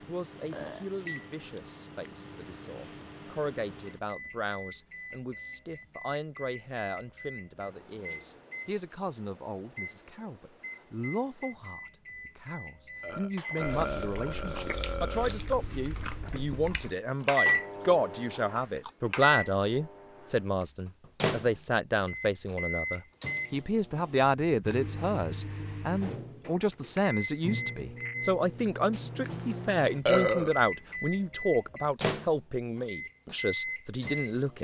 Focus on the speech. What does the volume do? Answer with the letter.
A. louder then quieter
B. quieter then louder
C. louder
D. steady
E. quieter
C.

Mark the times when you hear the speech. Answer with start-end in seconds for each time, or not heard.
0.0-34.5.